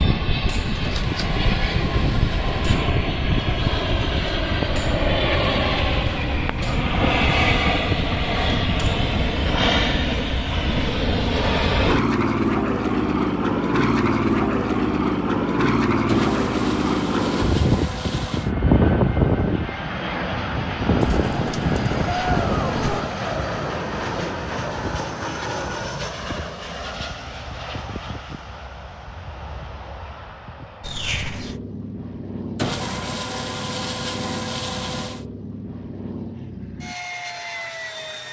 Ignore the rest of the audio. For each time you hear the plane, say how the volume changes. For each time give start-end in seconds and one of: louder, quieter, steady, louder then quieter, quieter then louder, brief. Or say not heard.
0.0-38.2 quieter.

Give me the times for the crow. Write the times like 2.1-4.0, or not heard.
not heard.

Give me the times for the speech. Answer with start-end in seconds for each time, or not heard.
not heard.